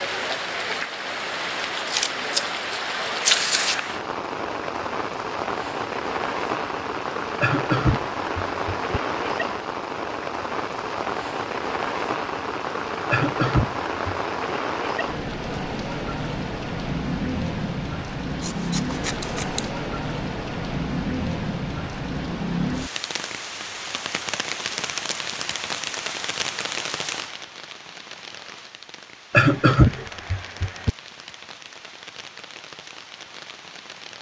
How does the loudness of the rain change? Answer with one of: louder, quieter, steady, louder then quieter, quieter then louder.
quieter.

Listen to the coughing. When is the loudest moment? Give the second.
30 s.